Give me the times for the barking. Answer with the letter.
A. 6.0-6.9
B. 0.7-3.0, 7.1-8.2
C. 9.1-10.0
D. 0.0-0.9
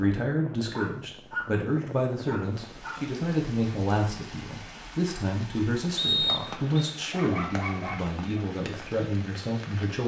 B.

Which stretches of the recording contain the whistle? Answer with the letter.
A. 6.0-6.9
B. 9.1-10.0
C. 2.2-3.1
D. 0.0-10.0
A.